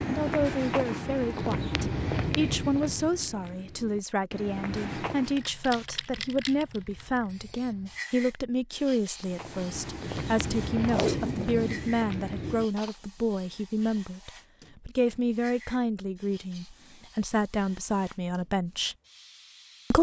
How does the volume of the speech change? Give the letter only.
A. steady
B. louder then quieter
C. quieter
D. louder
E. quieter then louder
A.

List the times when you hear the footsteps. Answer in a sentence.
You can hear the footsteps from 0.0 to 5.5 s and from 9.2 to 12.9 s.